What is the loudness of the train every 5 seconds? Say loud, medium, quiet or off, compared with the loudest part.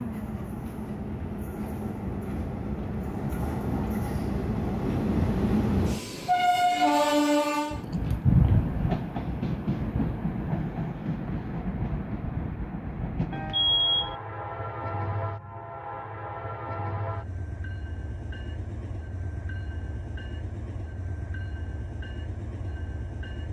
medium, loud, medium, quiet, quiet.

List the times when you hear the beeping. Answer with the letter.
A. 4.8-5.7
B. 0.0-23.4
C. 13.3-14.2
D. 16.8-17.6
C.